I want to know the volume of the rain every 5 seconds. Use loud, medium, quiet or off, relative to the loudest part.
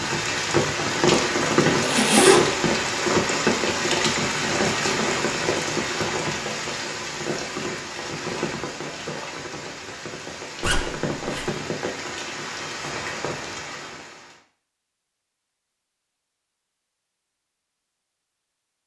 loud, medium, medium, off.